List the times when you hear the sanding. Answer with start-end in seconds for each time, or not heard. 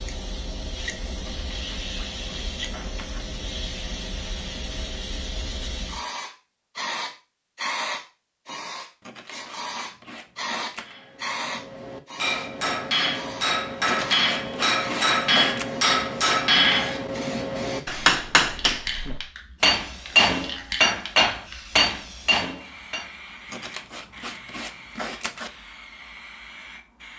1.2-3.2, 9.0-10.9, 13.8-15.7, 23.5-25.5.